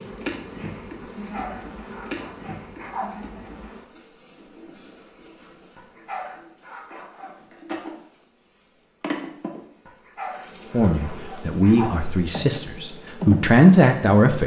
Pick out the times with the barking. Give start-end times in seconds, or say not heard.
1.0-3.0, 5.8-7.5, 9.8-11.9.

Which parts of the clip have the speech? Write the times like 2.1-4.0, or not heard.
10.7-14.4.